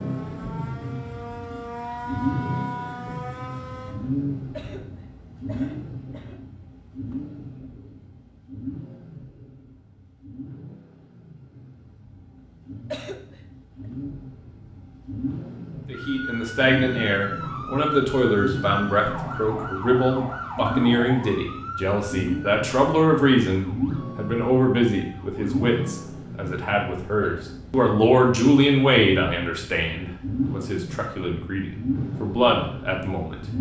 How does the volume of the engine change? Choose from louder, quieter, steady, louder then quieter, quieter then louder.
quieter then louder.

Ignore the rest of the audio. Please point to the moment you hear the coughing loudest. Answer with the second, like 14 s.
13 s.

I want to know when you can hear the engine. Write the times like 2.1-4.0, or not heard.
0.0-33.5.